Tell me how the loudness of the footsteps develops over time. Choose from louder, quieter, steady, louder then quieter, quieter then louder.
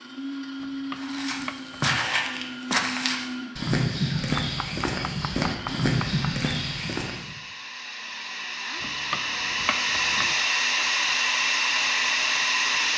steady.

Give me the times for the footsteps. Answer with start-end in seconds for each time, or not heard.
0.9-7.3.